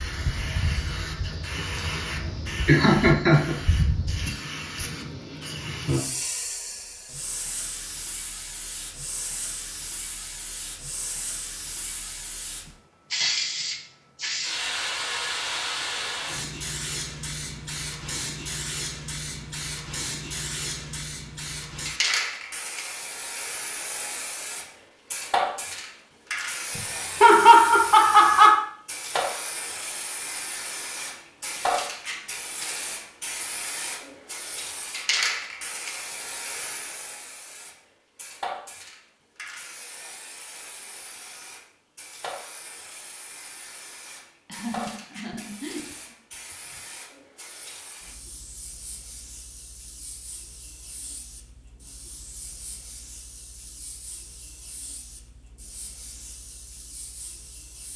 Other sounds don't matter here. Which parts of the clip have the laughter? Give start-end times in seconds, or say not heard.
2.6-3.5, 26.8-28.6, 44.5-46.0.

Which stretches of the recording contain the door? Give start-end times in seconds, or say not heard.
not heard.